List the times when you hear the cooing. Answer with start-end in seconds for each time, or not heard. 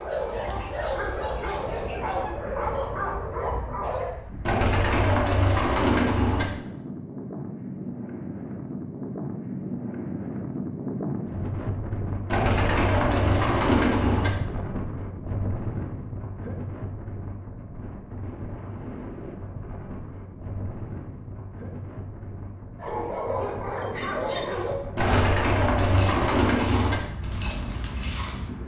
4.5-6.5, 12.2-14.3, 24.9-27.0.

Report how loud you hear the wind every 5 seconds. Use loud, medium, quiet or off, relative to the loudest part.
medium, loud, loud, medium, medium, medium.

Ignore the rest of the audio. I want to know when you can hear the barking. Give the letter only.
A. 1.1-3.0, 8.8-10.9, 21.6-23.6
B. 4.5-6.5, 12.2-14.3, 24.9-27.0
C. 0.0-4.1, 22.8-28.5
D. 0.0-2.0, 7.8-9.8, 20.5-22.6
C.